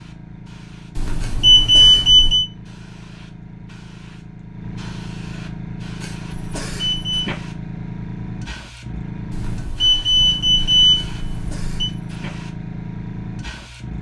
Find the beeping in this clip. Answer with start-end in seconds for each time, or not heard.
0.9-2.5, 6.3-7.3, 9.3-11.9.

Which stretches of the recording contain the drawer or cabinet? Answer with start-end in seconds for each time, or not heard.
not heard.